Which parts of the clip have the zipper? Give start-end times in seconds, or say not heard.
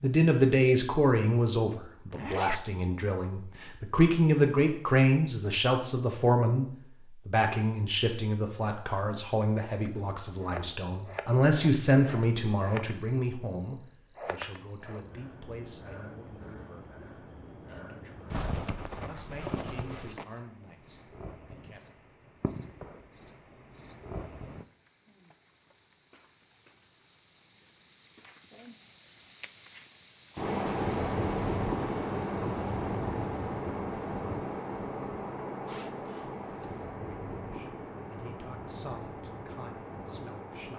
2.1-2.6, 18.3-20.2, 35.6-36.9.